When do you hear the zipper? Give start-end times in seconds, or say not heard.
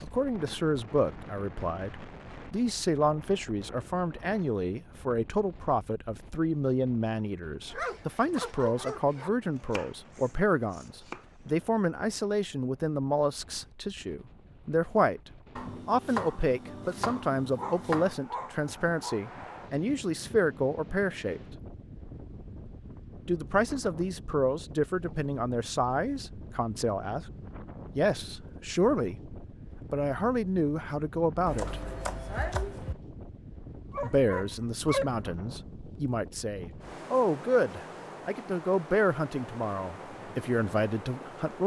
not heard.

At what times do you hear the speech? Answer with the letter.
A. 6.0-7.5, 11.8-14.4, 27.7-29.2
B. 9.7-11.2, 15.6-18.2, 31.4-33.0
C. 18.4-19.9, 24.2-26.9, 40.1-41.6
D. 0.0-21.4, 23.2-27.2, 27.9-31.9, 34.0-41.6
D.